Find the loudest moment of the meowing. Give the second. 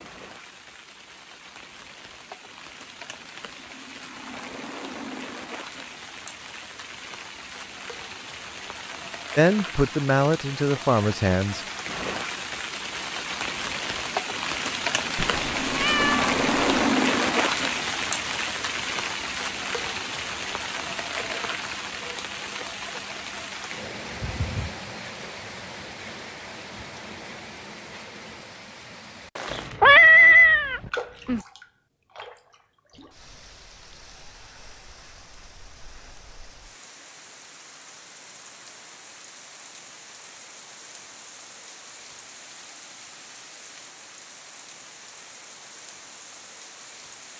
30 s.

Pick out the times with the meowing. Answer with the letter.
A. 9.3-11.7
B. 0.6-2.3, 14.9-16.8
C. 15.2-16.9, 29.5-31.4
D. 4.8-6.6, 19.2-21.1
C.